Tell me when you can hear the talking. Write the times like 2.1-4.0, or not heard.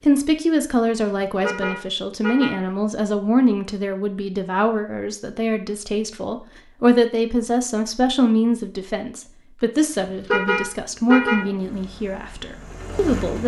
0.0-13.4.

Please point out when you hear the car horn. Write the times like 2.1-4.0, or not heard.
1.4-2.6, 10.2-11.4.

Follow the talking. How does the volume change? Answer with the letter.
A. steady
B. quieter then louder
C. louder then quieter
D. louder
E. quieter
A.